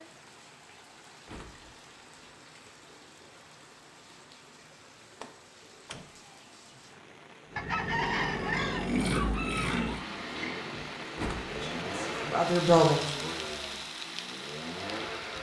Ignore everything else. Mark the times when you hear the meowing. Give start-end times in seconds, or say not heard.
not heard.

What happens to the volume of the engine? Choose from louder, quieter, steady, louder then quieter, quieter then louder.
quieter.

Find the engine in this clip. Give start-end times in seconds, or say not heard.
7.5-15.3.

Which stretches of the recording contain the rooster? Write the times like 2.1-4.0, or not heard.
7.5-10.1.